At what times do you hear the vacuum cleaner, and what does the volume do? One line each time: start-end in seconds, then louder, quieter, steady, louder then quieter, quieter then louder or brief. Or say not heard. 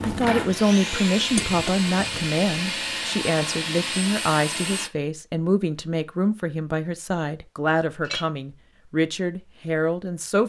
0.0-4.9 steady.